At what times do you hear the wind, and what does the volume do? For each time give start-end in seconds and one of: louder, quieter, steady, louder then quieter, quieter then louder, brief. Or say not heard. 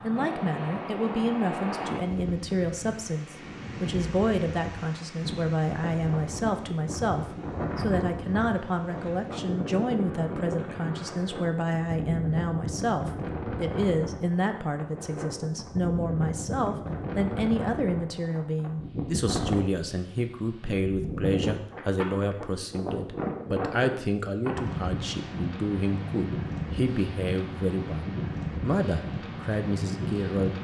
0.0-30.5 steady.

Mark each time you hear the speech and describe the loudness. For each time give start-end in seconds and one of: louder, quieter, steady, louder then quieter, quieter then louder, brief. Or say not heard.
0.0-30.5 steady.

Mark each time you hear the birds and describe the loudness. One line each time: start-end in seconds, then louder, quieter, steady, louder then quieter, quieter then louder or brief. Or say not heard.
not heard.